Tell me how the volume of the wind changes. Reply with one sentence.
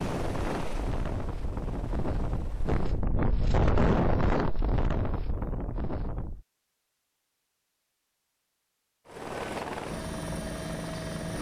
The loudness of the wind goes up, then down.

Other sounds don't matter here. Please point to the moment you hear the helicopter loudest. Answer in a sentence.
The volume of the helicopter peaks at 10 seconds.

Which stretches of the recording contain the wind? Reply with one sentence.
You can hear the wind from 0.0 to 6.5 s.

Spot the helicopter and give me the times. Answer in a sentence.
You can hear the helicopter from 0.0 to 3.0 s and from 9.1 to 11.3 s.